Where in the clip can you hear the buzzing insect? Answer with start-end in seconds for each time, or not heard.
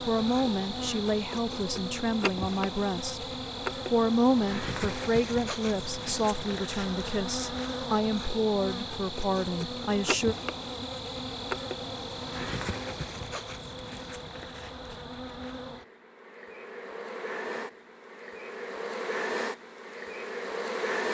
0.0-21.0.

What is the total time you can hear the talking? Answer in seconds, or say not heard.
10 s.